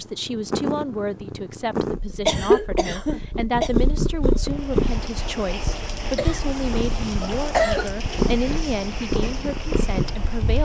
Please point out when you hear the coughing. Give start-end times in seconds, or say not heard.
2.2-3.7, 6.2-8.0.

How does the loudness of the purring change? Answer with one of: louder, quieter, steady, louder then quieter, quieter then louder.
steady.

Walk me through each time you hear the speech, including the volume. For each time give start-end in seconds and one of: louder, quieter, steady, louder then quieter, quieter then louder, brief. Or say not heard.
0.0-10.6 steady.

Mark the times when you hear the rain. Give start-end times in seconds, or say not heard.
4.4-10.6.